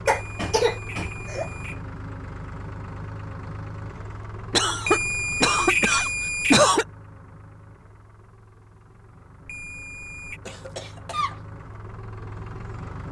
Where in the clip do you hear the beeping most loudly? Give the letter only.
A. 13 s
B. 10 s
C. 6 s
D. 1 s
C.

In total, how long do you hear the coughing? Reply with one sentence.
You can hear the coughing for 5 seconds altogether.